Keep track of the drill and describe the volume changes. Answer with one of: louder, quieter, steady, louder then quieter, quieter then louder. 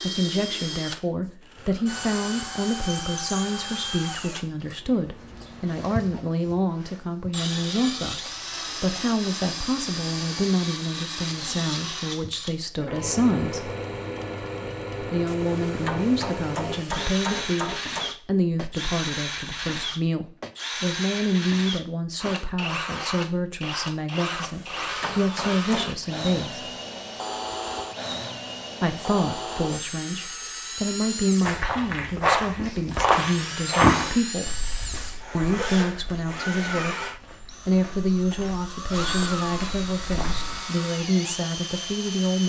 steady.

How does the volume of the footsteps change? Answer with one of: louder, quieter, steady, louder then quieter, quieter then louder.
quieter then louder.